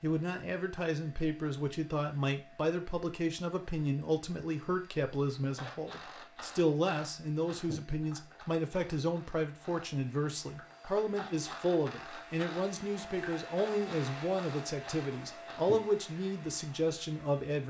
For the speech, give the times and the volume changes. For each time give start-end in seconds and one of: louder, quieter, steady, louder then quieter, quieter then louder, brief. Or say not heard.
0.0-17.6 steady.